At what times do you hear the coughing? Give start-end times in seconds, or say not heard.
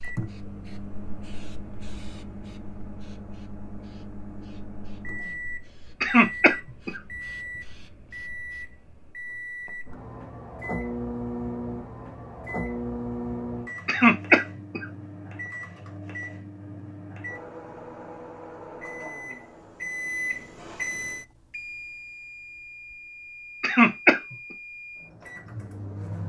6.0-7.0, 13.8-14.8, 23.6-24.4.